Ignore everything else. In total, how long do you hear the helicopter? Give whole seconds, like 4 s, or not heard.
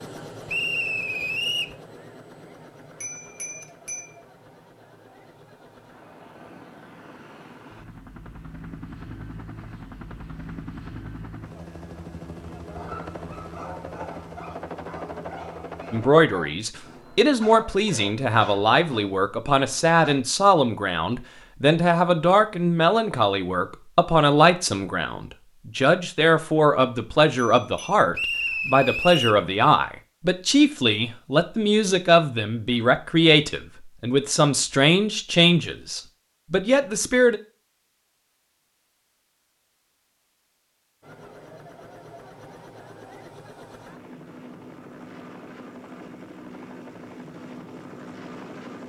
24 s.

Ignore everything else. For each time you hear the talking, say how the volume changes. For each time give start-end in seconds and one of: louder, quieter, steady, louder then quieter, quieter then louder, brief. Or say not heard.
15.9-37.4 steady.